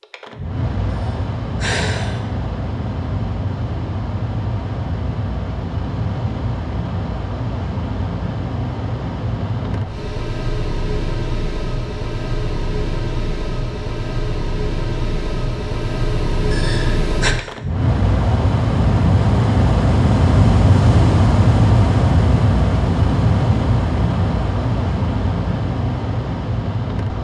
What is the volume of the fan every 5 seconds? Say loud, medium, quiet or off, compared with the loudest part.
medium, medium, medium, loud, loud, medium.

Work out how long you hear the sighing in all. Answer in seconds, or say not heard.
2 s.